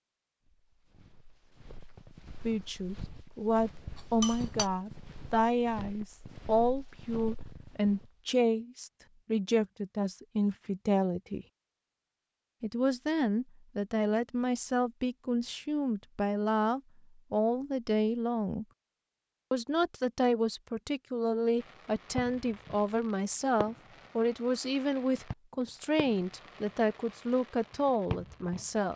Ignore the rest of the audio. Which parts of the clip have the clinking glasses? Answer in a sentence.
The clinking glasses can be heard from 4.0 to 4.7 s.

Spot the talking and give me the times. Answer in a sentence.
The talking can be heard from 2.5 to 11.4 s, from 12.6 to 18.6 s and from 19.5 to 28.9 s.